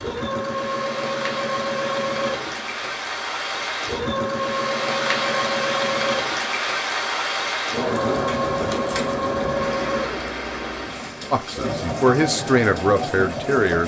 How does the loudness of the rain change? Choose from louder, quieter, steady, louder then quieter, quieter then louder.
louder then quieter.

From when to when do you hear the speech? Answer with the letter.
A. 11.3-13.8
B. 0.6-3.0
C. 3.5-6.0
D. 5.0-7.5
A.